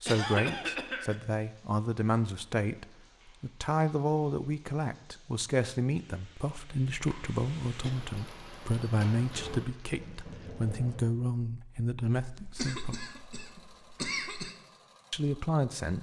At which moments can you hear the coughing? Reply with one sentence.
You can hear the coughing from 0.1 to 1.1 s, from 6.9 to 7.9 s and from 12.2 to 14.6 s.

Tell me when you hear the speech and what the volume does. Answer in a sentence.
The speech can be heard from 0.0 to 13.0 s, at a steady volume; and briefly from 15.1 to 15.9 s.